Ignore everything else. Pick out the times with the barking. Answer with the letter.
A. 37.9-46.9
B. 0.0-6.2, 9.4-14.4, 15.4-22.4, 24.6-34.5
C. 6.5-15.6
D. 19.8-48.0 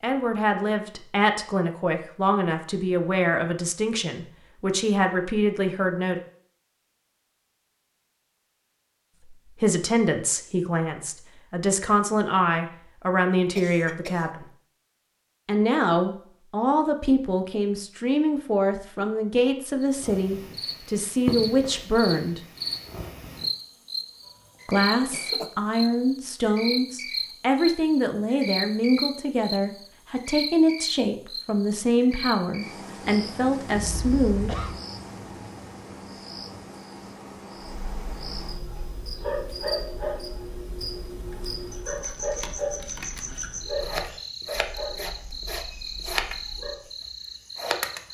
A.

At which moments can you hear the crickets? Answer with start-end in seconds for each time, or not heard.
19.8-48.0.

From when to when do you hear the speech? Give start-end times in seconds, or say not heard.
0.0-6.2, 9.4-14.4, 15.4-22.4, 24.6-34.5.